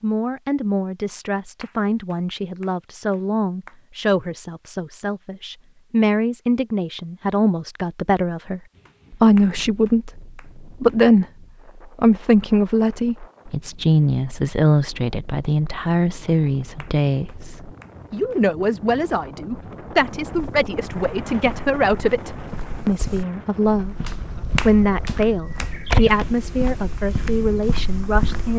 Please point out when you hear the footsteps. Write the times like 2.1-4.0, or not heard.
20.2-28.5.